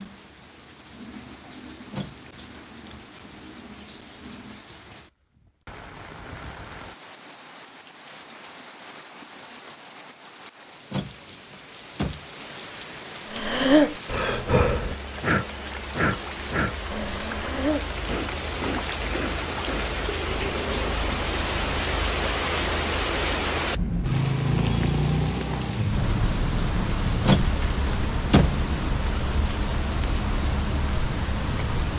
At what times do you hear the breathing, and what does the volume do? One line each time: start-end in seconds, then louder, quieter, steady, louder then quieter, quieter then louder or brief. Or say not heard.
13.3-21.9 quieter.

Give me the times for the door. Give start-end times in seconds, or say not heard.
1.9-2.5, 10.9-12.2, 27.2-28.7.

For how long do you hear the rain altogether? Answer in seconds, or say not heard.
32 s.